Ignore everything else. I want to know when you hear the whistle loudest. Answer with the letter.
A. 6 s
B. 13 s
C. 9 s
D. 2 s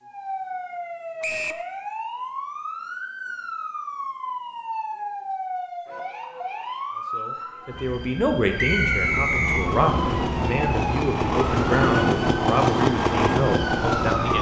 C.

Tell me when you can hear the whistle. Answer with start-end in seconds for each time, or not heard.
1.2-1.6, 8.6-9.7.